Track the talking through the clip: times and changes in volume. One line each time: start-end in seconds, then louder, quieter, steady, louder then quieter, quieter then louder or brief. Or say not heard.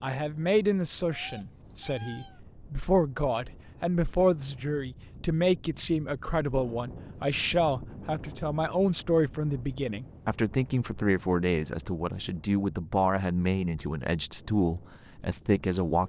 0.0-16.0 steady.